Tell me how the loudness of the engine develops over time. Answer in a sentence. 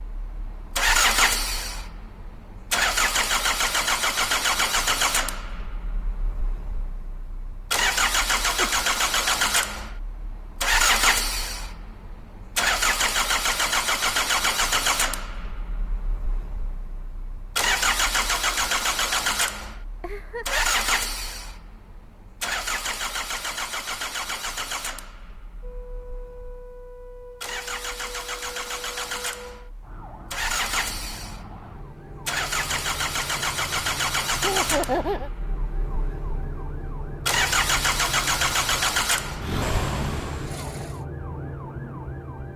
The loudness of the engine goes down, then up.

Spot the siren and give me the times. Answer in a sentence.
The siren can be heard from 25.6 to 42.5 s.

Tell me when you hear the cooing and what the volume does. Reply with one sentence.
The cooing can't be heard in this clip.